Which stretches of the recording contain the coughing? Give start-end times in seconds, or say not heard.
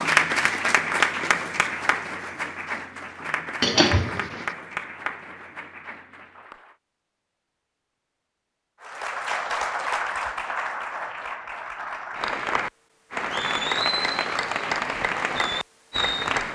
3.6-4.5.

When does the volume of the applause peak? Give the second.
1 s.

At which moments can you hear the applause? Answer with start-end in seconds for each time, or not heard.
0.0-6.8, 8.8-16.5.